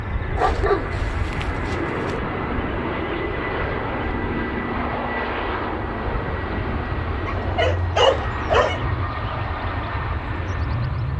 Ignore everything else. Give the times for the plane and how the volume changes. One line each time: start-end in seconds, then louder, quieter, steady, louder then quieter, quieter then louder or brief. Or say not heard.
0.0-11.1 steady.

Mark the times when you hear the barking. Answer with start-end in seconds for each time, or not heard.
0.3-2.2, 7.2-8.8.